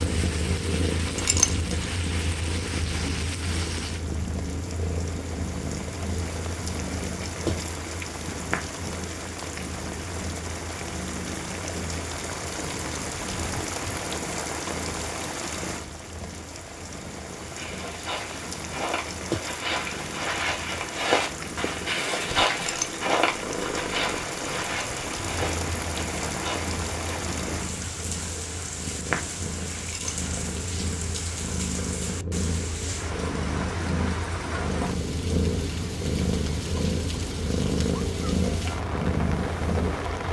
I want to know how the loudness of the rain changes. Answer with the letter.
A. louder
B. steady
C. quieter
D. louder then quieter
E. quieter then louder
B.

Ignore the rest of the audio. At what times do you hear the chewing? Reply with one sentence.
The chewing can't be heard in this clip.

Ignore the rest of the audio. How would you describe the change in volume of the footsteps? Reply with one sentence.
The loudness of the footsteps goes up, then down.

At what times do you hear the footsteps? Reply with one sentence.
You can hear the footsteps from 17.4 to 27.2 s.